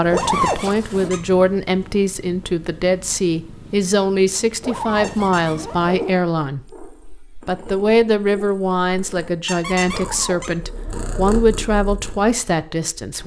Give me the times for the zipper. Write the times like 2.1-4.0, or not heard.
0.1-1.1, 4.6-6.2, 9.9-11.2.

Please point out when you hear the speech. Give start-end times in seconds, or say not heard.
0.0-6.8, 7.5-13.2.